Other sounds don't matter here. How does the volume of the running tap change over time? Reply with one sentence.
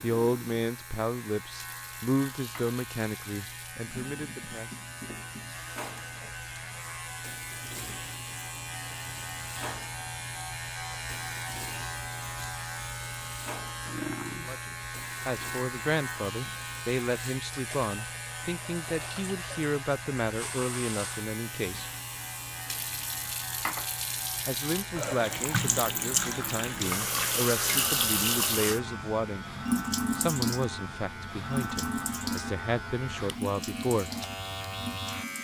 The volume of the running tap goes up.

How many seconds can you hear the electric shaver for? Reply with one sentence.
The electric shaver can be heard for 35 seconds in total.